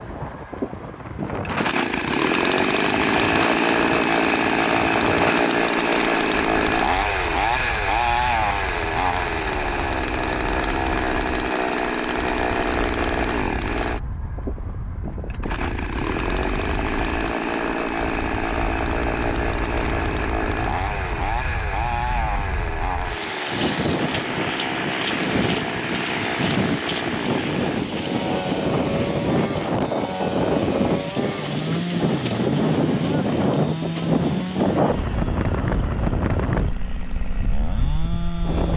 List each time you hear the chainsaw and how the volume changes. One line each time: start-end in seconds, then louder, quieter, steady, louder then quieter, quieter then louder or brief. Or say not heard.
0.0-38.7 quieter.